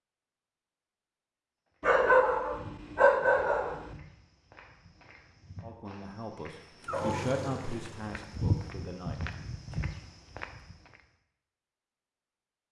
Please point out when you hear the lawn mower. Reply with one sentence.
You can hear the lawn mower from 6.8 to 8.8 s.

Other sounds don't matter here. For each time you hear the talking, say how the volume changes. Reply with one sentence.
You can hear the talking from 5.6 to 9.8 s, getting louder then quieter.